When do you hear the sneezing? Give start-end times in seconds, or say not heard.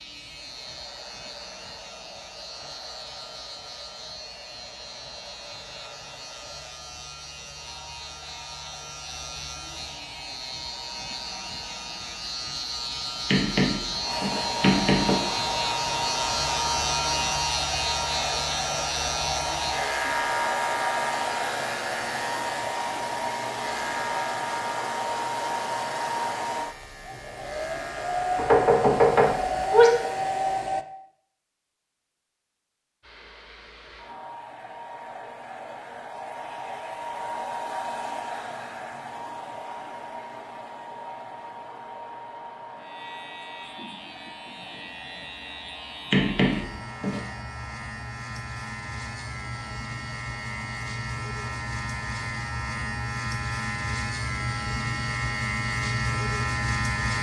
not heard.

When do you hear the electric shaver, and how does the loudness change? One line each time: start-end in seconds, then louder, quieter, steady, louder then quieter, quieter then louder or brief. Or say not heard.
0.0-30.6 louder then quieter
42.8-57.1 louder.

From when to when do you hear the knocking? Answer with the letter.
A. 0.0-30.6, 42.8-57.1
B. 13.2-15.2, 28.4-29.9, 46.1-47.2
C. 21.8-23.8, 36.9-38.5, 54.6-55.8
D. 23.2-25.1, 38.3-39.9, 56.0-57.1
B.